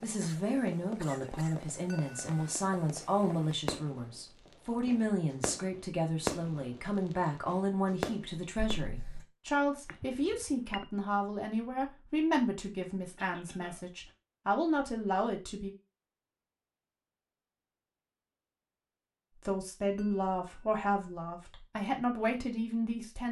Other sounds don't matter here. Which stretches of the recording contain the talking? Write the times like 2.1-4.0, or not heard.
0.0-15.7, 19.4-23.2.